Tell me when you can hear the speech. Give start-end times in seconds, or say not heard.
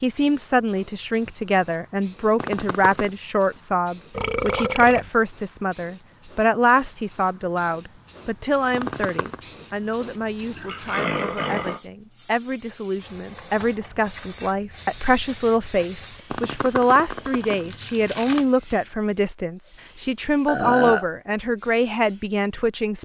0.0-22.9.